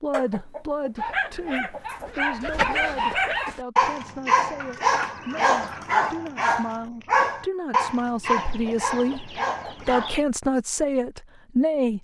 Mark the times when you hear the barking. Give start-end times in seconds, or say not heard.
0.9-10.2.